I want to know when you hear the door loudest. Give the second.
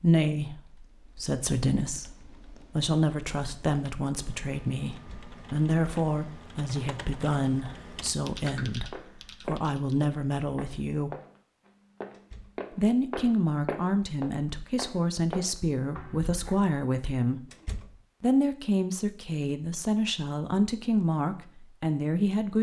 18 s.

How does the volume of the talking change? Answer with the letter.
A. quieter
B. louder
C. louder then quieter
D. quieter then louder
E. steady
E.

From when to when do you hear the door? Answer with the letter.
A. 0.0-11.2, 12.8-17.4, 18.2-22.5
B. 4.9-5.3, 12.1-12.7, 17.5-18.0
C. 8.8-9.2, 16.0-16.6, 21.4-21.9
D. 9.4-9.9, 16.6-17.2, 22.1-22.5
B.